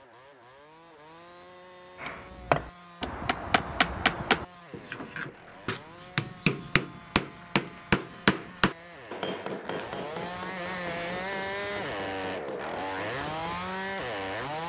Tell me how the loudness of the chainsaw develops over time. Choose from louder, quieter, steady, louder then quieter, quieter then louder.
louder.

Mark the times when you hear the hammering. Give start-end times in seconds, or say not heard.
2.0-13.6.